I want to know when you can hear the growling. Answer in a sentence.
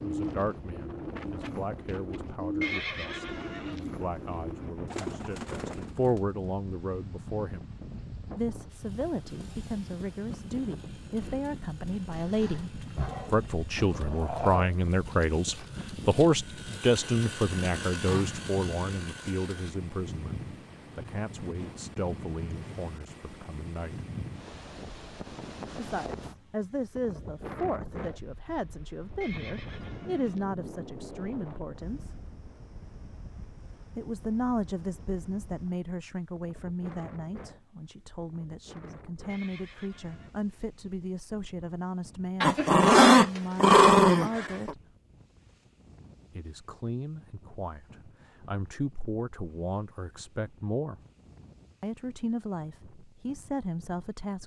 You can hear the growling from 12.1 to 14.7 s and from 42.4 to 44.8 s.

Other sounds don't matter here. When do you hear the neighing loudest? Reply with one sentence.
The volume of the neighing peaks at 3 seconds.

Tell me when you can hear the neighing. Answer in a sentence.
You can hear the neighing from 2.6 to 3.9 s, from 29.2 to 30.4 s and from 39.2 to 40.4 s.